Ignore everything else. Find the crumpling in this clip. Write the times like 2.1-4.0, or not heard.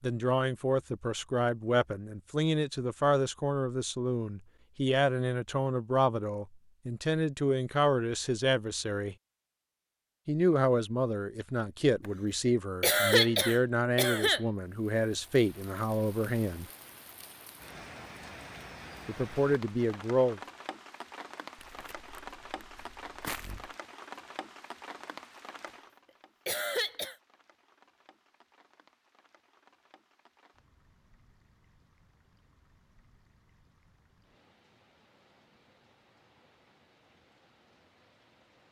21.6-23.7.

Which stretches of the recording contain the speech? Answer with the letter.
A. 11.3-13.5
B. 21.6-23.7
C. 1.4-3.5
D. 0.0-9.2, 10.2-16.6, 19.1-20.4
D.